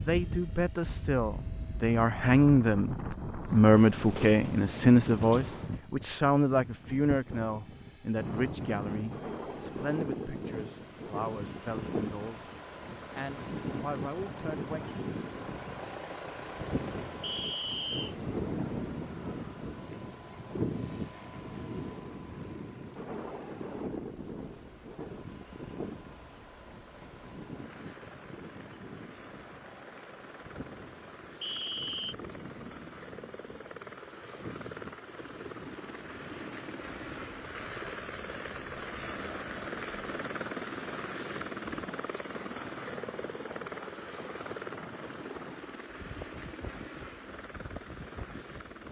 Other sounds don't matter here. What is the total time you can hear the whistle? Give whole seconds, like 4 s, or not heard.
2 s.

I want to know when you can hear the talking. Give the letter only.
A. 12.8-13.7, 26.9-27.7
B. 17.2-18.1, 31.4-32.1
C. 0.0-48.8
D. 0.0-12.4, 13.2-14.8
D.